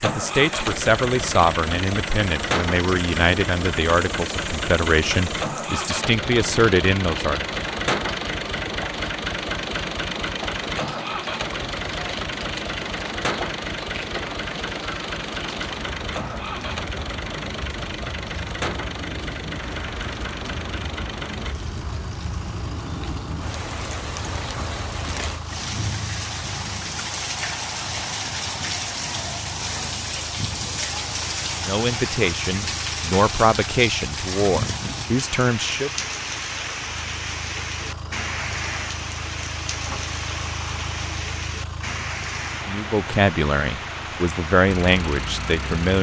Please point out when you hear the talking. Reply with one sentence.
The talking can be heard from 0.0 to 7.6 s, from 31.6 to 35.9 s and from 42.6 to 45.9 s.